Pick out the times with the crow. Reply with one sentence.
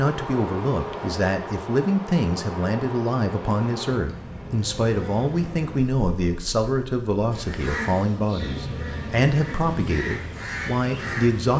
The crow can be heard from 7.3 to 11.5 s.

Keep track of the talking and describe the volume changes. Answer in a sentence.
The volume of the talking stays about the same.